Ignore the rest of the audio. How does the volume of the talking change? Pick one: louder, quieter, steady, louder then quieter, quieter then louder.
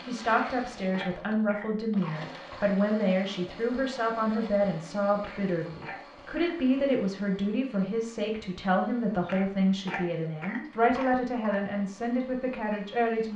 steady.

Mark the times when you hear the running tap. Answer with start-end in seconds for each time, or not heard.
not heard.